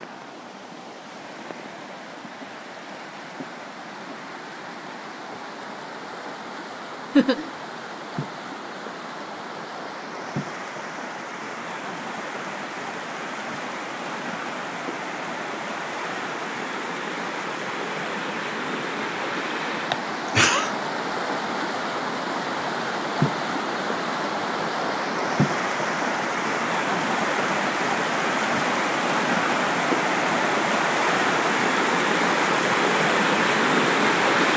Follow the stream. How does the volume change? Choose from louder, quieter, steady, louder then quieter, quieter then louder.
louder.